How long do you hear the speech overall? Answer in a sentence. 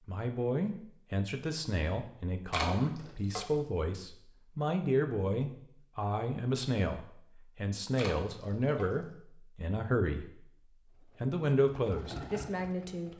The speech can be heard for 12 seconds in total.